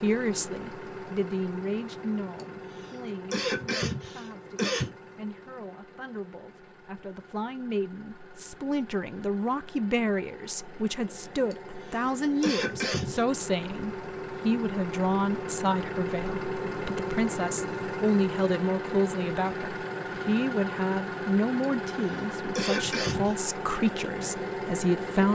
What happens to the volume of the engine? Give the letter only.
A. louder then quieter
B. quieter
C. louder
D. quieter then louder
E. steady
D.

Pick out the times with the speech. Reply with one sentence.
You can hear the speech from 0.0 to 25.2 s.